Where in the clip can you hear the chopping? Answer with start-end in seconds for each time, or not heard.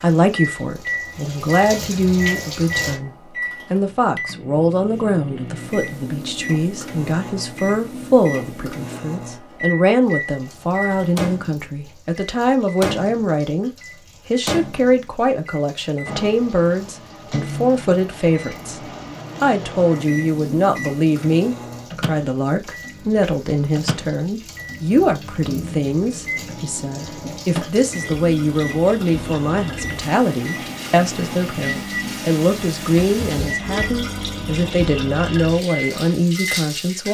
not heard.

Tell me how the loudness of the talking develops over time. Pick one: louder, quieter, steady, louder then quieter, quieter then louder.
steady.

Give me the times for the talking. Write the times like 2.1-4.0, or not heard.
0.0-37.0.